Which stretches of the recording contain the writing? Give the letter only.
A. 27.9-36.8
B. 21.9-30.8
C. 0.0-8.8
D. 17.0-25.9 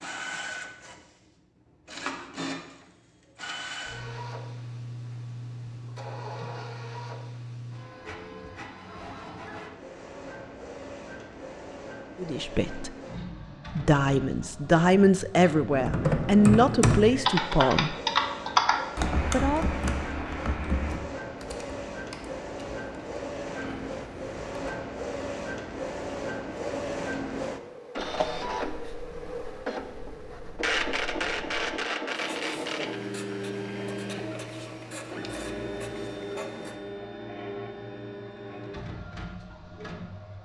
A.